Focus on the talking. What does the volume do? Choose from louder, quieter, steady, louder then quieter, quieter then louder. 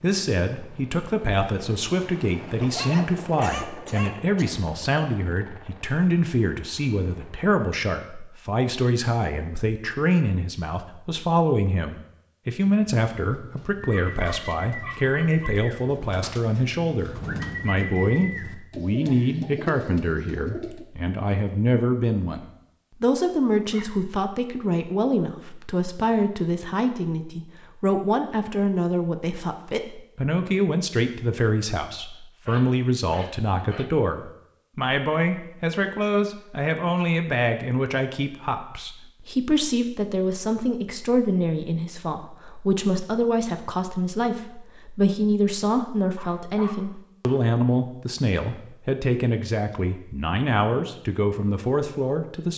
steady.